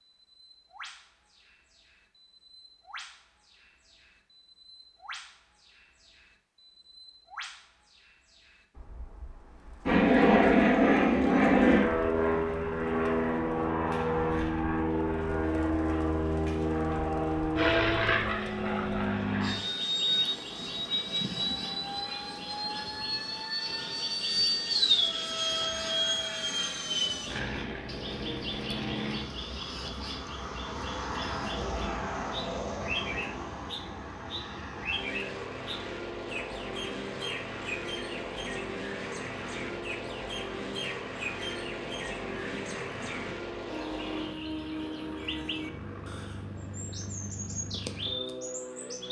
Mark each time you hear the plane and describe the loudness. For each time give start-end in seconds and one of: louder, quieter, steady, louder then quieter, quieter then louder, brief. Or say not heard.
9.8-49.0 quieter.